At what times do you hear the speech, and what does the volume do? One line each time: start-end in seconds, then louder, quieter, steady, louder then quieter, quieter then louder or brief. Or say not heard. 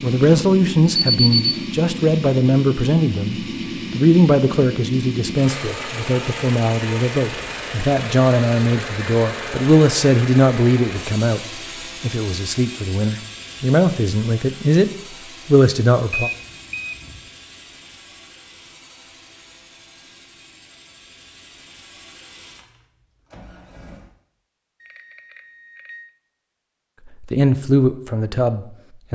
0.0-16.3 steady
27.2-29.0 brief.